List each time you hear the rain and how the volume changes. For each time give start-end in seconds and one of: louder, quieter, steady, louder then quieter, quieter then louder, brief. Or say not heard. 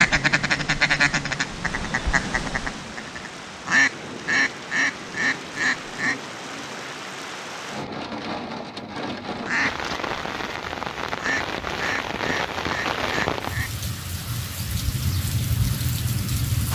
0.1-16.6 louder.